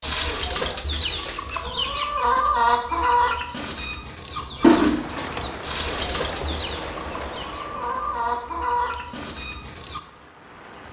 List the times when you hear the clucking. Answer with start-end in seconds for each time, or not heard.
0.0-10.0.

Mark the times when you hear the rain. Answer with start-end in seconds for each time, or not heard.
4.8-10.8.